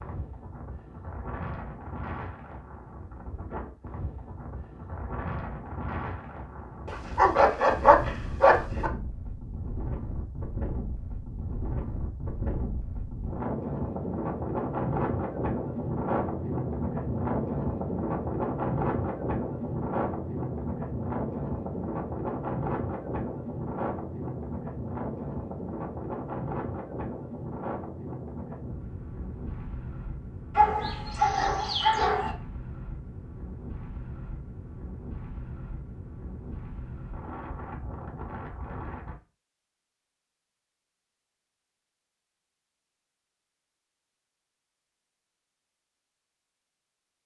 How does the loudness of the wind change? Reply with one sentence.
The loudness of the wind goes up, then down.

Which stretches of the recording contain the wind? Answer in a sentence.
You can hear the wind from 0.0 to 39.1 s.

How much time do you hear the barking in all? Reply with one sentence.
The barking can be heard for 4 seconds in total.